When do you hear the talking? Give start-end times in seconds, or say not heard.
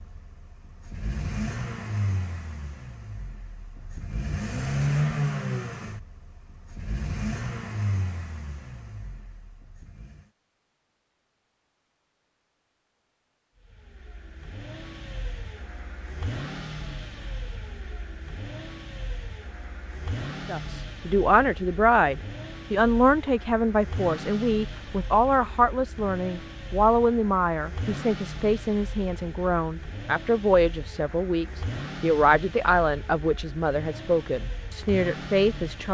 20.4-35.8.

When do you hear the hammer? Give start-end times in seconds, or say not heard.
not heard.